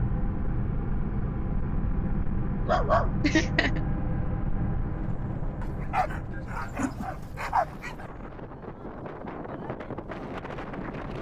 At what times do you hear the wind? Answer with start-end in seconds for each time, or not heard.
4.8-11.1.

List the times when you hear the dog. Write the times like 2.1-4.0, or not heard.
2.6-3.5, 5.6-8.1.